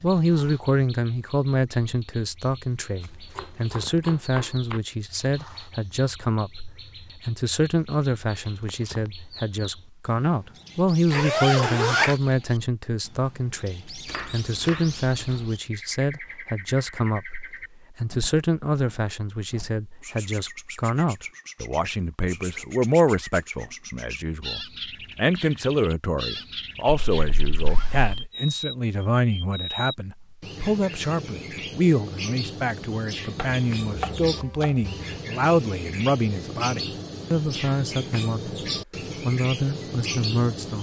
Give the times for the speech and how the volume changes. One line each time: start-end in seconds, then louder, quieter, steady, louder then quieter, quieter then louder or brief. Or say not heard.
0.0-38.5 steady
39.2-40.7 brief.